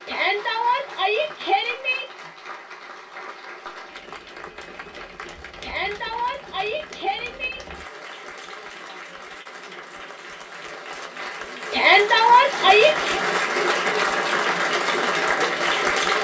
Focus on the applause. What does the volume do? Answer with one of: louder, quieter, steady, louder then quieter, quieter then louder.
louder.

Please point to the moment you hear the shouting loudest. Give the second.
12 s.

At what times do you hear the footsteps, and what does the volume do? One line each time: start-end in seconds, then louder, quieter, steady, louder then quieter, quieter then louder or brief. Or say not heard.
not heard.